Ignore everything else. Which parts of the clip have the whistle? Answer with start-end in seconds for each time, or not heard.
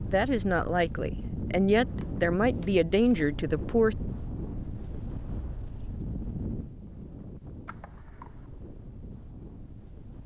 not heard.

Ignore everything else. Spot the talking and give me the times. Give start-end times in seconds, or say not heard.
0.1-4.0.